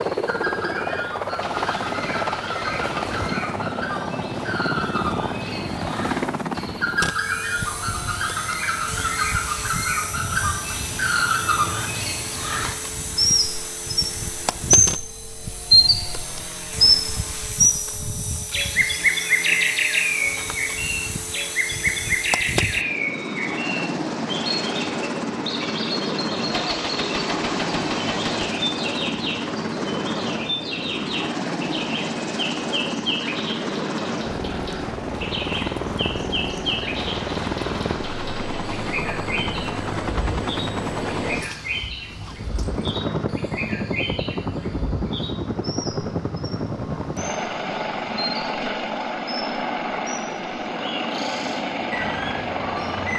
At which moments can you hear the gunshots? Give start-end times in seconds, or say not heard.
1.4-3.4, 26.5-28.5, 37.0-39.0.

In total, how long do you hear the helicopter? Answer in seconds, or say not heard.
53 s.